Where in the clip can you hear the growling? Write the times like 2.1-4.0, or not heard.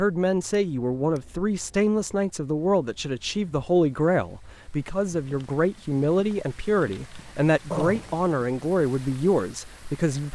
7.7-8.3.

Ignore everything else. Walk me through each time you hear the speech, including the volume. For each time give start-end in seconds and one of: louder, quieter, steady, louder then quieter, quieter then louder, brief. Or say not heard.
0.0-10.3 steady.